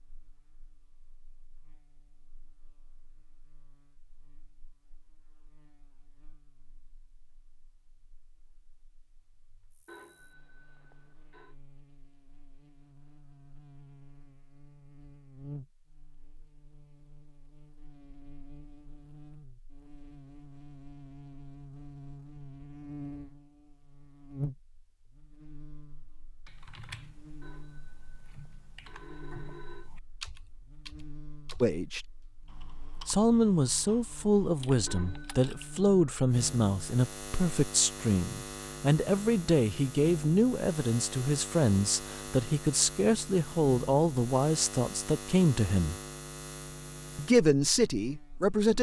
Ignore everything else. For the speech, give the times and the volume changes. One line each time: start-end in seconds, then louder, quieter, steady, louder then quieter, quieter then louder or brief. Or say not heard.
31.6-32.0 brief
33.0-46.0 steady
47.1-48.7 brief.